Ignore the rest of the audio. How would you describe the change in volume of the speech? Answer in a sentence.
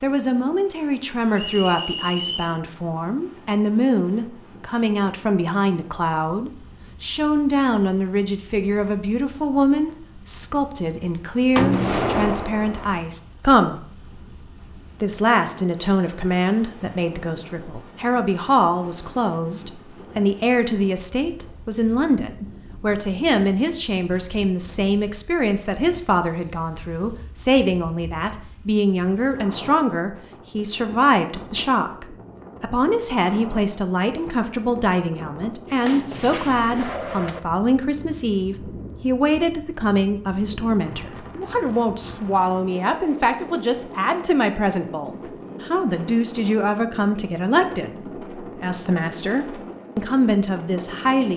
The loudness of the speech stays about the same.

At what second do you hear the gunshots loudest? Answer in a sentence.
The volume of the gunshots peaks at 12 seconds.